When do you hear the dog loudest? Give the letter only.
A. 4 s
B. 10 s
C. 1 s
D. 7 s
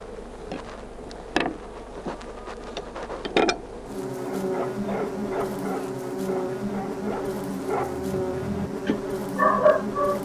B.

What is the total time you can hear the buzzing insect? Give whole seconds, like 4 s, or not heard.
10 s.